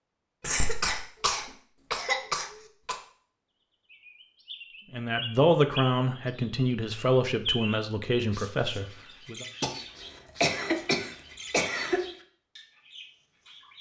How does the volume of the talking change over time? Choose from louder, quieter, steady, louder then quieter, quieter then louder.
quieter.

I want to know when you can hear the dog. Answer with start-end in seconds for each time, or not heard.
not heard.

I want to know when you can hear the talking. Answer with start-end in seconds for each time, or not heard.
4.9-9.4.